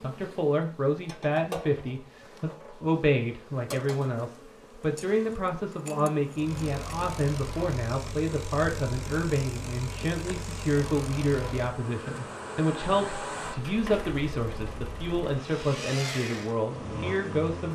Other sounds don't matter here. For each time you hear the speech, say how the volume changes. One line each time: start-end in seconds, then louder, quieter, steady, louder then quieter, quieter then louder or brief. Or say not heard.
0.0-17.7 steady.